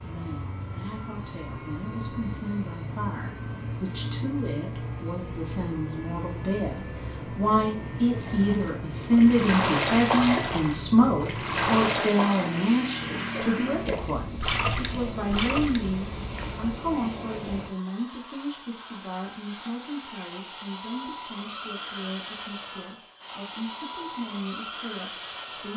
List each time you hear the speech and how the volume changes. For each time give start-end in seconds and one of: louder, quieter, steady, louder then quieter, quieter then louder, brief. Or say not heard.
0.0-25.7 louder then quieter.